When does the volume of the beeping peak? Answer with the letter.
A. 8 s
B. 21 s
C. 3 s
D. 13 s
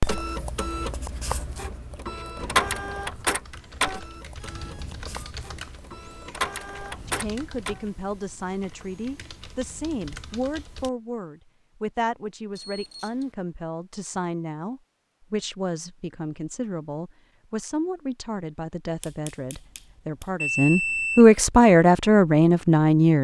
B.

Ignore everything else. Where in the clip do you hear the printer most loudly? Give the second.
3 s.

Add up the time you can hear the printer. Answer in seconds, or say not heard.
8 s.